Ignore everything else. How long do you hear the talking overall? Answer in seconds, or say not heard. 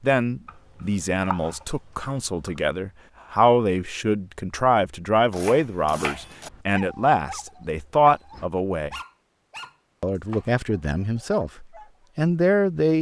12 s.